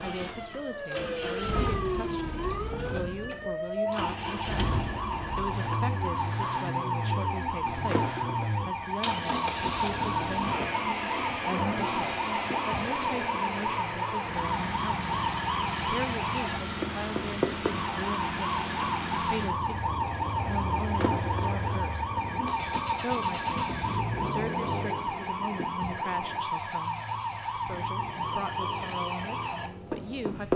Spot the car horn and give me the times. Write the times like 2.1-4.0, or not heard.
not heard.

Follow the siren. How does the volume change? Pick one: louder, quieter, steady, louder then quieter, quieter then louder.
steady.